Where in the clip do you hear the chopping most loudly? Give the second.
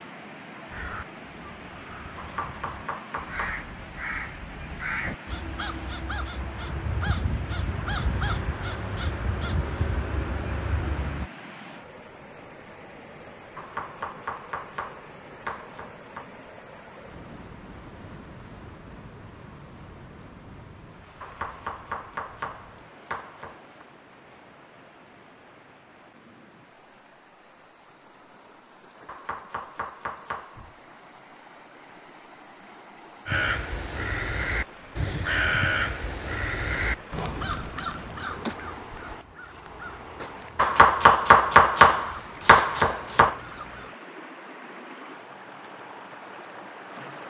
42 s.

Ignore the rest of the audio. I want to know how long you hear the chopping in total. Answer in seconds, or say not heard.
11 s.